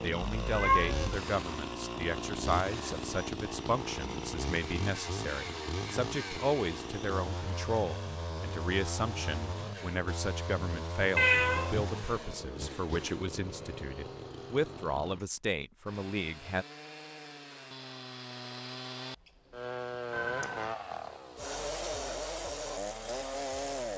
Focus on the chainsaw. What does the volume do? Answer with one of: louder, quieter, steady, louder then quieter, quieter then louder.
quieter then louder.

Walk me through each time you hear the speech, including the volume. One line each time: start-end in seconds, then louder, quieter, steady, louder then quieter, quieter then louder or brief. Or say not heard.
0.0-16.6 steady.